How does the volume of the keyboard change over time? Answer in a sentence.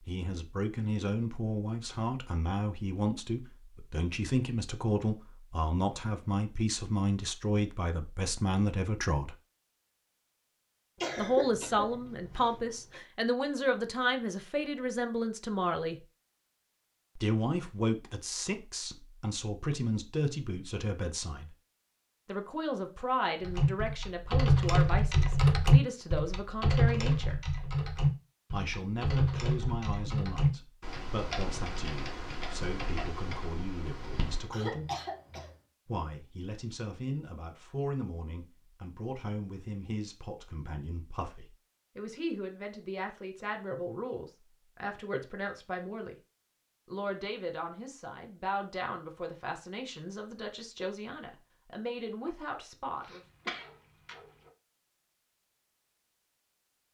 The loudness of the keyboard goes down.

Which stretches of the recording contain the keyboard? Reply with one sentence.
You can hear the keyboard from 23.4 to 34.5 s.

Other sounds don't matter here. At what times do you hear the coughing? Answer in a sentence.
You can hear the coughing from 10.9 to 13.0 s, from 34.5 to 35.5 s and from 53.0 to 54.5 s.